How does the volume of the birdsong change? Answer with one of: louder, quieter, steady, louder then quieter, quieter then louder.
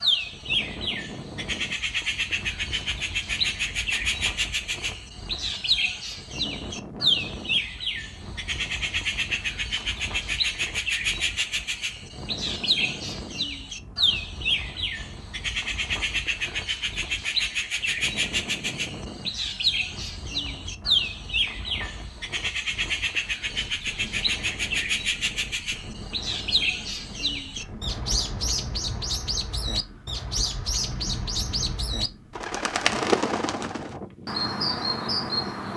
steady.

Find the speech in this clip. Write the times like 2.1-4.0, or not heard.
not heard.